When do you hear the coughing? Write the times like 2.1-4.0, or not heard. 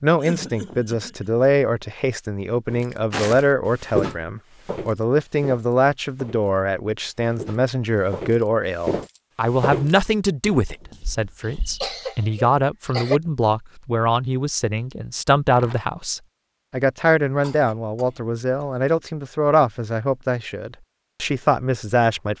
0.1-1.4, 11.7-13.2, 17.4-18.7.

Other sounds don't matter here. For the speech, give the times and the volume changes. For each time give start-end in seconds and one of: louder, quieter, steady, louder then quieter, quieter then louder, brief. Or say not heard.
0.0-22.3 steady.